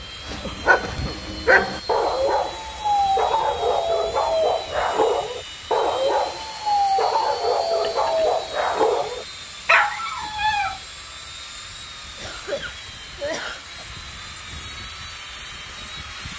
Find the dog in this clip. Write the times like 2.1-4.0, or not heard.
0.2-10.8.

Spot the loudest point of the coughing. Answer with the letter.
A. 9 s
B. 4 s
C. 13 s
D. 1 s
C.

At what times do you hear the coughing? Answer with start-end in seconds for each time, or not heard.
0.4-1.2, 7.8-8.4, 12.2-13.8.